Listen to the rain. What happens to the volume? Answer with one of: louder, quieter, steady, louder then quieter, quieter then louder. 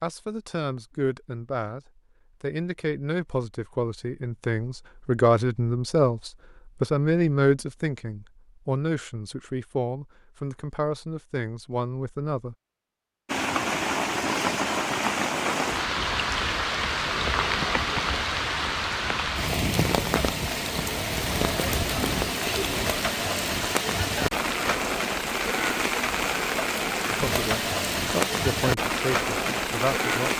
steady.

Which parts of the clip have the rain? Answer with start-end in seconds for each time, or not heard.
13.2-30.3.